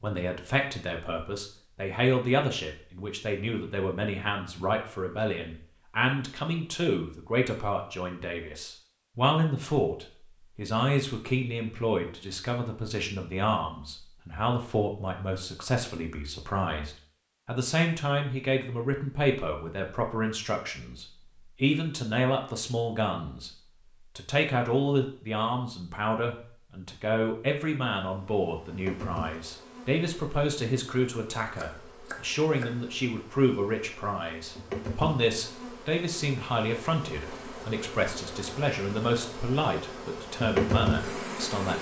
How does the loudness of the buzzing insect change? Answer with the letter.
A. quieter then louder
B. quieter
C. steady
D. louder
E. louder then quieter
A.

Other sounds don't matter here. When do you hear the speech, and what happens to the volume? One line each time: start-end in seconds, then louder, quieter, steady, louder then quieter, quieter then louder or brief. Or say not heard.
0.0-23.5 steady
24.1-41.7 steady.